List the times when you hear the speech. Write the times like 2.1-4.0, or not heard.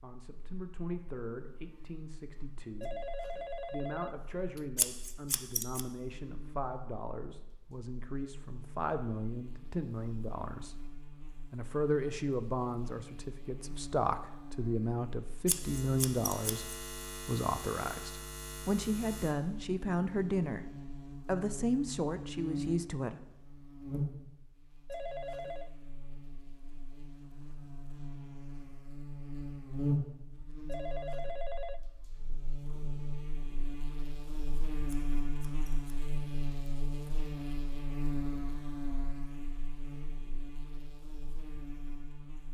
0.0-10.8, 11.5-23.2.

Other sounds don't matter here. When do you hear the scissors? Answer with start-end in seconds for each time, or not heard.
4.8-5.8, 15.4-16.7, 34.9-35.9.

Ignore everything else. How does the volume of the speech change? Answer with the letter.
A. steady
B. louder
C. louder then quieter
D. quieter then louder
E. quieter
B.